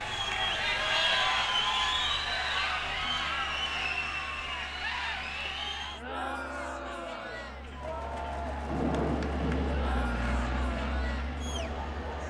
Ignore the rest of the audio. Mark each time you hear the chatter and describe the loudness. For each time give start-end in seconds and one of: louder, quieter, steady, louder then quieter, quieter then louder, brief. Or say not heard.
0.0-12.2 quieter.